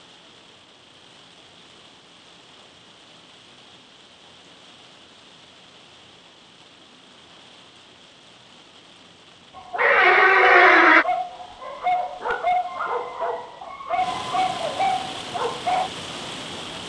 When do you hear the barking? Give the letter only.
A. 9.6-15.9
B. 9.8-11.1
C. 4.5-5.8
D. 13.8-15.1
A.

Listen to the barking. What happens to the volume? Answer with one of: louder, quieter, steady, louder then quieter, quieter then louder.
steady.